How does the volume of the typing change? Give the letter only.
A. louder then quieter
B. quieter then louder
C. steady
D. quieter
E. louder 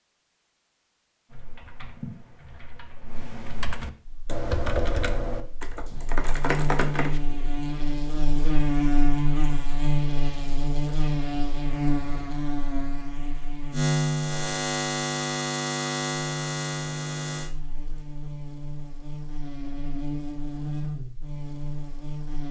E.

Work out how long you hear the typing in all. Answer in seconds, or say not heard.
6 s.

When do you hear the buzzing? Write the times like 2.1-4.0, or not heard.
4.0-22.4.